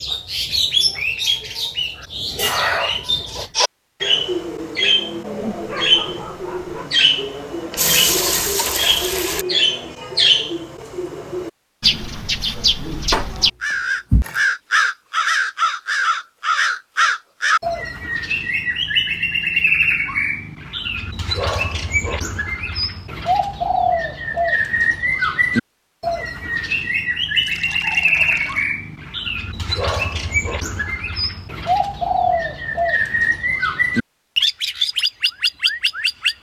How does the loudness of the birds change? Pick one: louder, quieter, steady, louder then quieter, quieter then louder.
steady.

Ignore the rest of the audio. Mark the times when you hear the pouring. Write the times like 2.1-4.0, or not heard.
7.8-9.4, 13.1-14.4, 27.4-28.8.